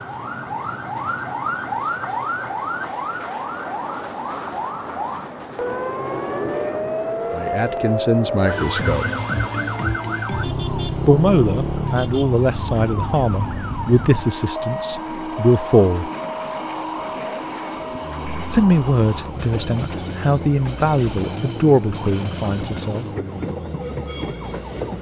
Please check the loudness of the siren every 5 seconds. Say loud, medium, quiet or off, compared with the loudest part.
loud, loud, loud, medium, medium.